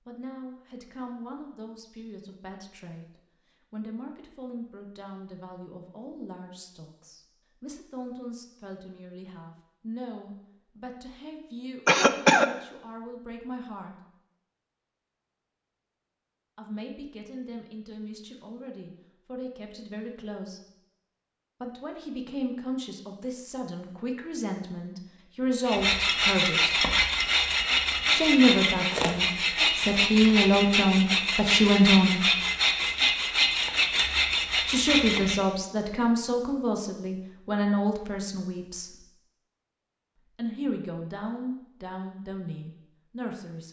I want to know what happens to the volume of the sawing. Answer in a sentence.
The volume of the sawing stays about the same.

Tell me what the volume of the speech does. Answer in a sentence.
The loudness of the speech goes up, then down.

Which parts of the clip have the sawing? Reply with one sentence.
You can hear the sawing from 25.6 to 35.4 s.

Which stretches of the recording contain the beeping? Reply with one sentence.
You can't hear the beeping here.